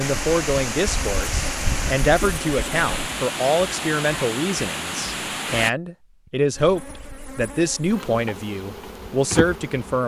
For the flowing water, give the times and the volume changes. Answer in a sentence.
The flowing water can be heard from 0.0 to 5.7 s, at a steady volume.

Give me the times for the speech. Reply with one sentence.
The speech can be heard from 0.0 to 10.0 s.